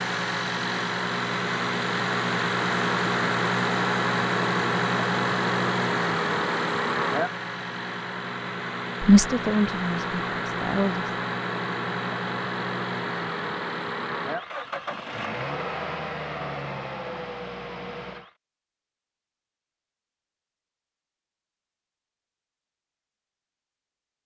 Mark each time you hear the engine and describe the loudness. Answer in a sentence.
The engine can be heard from 0.0 to 18.4 s, getting quieter.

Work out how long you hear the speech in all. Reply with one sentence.
You can hear the speech for 2 seconds altogether.